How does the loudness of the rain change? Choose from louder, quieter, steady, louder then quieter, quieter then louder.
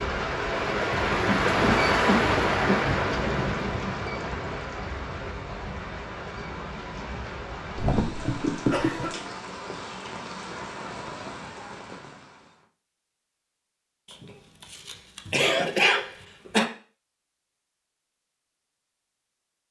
quieter.